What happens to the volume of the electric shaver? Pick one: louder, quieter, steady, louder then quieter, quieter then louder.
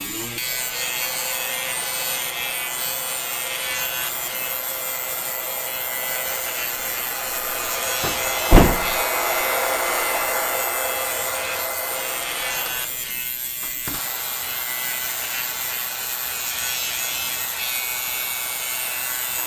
steady.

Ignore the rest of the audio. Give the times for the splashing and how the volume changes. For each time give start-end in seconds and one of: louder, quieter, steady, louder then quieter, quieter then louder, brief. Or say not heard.
not heard.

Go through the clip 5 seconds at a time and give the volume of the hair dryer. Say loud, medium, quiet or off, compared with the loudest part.
medium, loud, loud, medium.